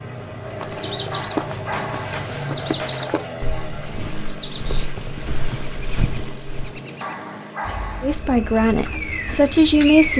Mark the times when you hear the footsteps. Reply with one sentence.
You can hear the footsteps from 0.6 to 6.8 s.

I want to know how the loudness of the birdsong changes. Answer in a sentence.
The loudness of the birdsong goes down, then up.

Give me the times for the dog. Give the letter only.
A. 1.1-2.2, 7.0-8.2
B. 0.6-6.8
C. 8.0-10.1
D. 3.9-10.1
A.